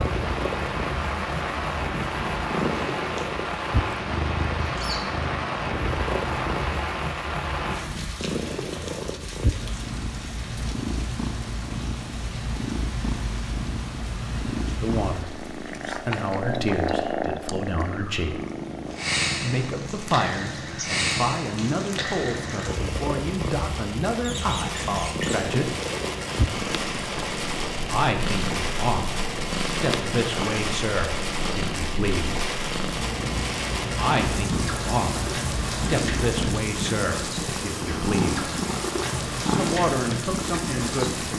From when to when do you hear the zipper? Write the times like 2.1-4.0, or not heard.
not heard.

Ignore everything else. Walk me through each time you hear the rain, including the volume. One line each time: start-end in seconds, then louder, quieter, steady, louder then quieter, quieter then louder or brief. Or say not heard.
0.0-41.3 quieter then louder.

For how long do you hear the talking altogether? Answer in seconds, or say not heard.
21 s.